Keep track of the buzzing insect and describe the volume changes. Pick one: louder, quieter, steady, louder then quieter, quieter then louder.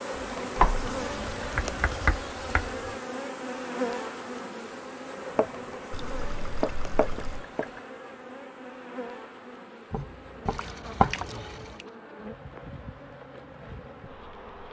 quieter.